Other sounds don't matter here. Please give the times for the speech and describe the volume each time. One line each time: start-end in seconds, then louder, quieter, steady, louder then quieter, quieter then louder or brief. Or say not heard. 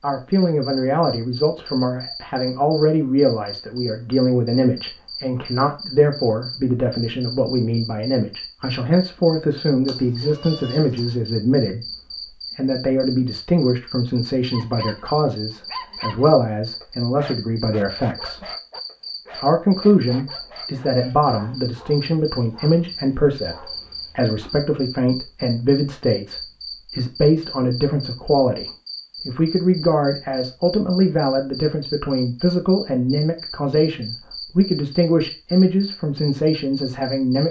0.0-18.5 steady
19.4-37.4 steady.